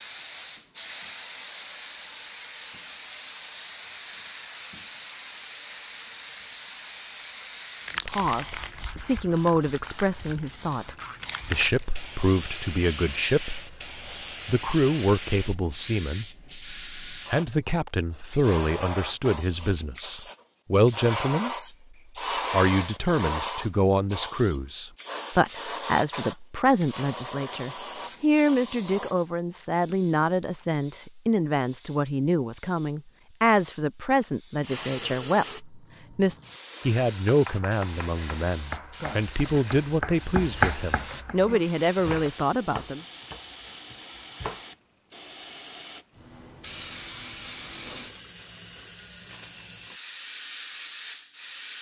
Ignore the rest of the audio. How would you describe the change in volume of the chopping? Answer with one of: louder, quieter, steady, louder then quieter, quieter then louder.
louder then quieter.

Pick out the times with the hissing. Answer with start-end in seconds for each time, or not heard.
0.0-51.7.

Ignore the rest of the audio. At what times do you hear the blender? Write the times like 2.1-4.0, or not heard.
not heard.